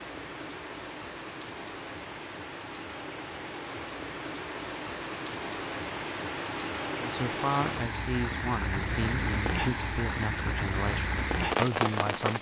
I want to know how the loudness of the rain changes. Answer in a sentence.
The loudness of the rain goes up.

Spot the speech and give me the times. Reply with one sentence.
The speech can be heard from 7.0 to 12.3 s.